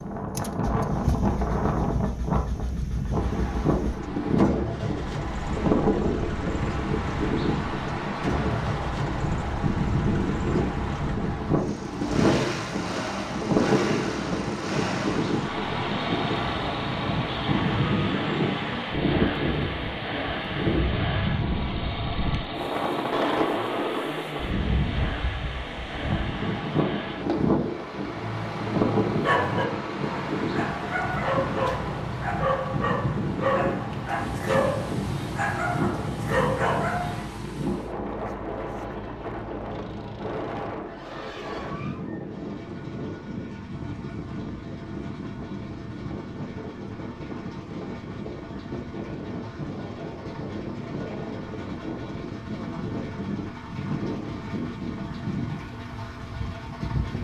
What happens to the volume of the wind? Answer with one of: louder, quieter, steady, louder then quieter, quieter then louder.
quieter.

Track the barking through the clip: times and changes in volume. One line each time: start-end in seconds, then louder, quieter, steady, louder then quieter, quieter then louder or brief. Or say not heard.
28.1-37.4 steady.